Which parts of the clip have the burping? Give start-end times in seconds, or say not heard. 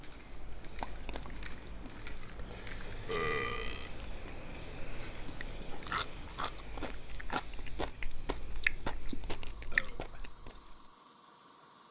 3.0-3.9, 9.7-10.3.